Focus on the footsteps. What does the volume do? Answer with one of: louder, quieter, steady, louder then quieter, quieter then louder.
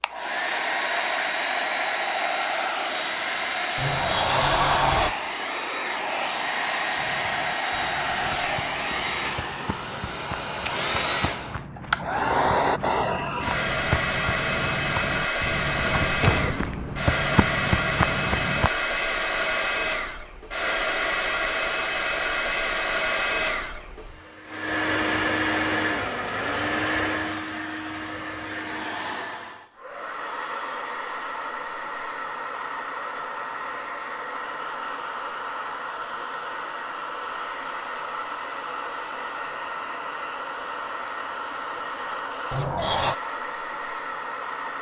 louder.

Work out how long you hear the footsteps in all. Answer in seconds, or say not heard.
12 s.